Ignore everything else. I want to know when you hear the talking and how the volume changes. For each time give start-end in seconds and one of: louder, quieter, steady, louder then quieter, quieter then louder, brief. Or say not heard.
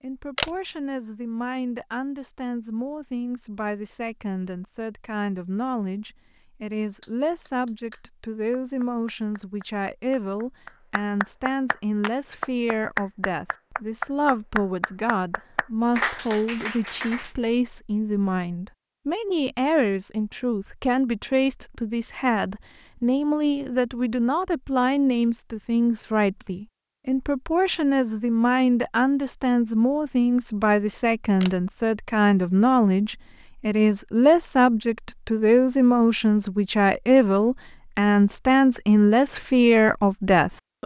0.0-40.8 louder.